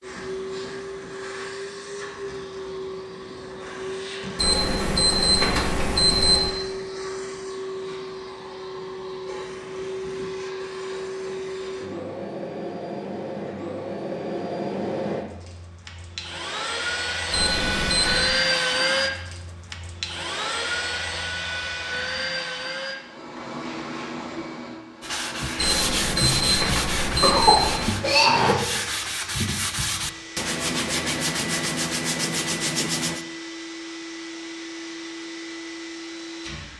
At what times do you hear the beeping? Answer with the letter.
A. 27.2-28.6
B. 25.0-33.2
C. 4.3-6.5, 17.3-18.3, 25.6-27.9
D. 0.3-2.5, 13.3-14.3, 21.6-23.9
C.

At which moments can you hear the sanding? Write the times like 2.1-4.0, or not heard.
25.0-33.2.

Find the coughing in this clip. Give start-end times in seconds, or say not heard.
27.2-28.6.